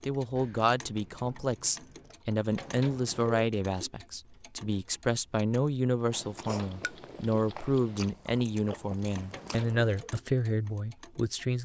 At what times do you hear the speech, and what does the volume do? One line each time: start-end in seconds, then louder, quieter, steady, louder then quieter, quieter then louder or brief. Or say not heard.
0.0-11.6 steady.